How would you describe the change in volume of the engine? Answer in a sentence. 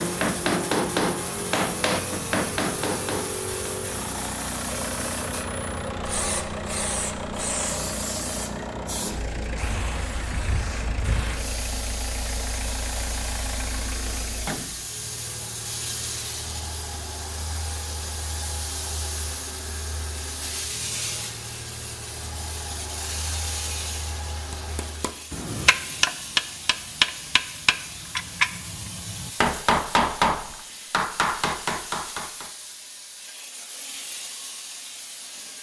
The loudness of the engine goes down.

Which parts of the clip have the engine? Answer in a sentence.
The engine can be heard from 0.0 to 25.3 s.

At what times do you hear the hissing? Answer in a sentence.
You can hear the hissing from 0.0 to 35.5 s.